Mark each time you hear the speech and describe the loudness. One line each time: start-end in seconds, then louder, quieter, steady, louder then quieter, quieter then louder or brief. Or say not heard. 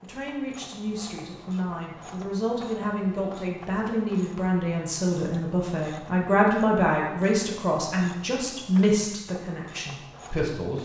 0.0-10.7 louder.